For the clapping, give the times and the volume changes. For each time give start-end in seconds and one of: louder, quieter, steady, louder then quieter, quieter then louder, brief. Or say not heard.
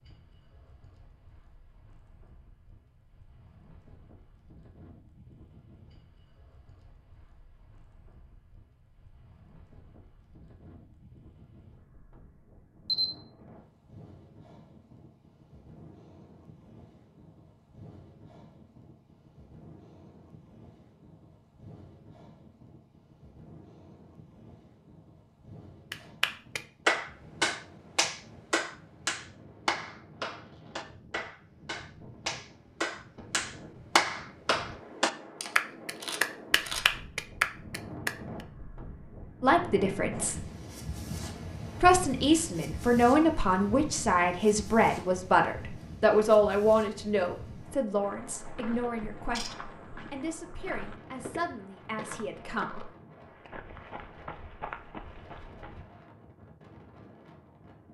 25.9-38.1 quieter then louder.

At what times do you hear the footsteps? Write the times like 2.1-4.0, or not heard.
48.0-55.9.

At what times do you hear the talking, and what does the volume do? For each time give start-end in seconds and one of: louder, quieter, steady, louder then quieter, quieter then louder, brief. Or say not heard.
39.4-40.4 brief
41.8-52.8 quieter.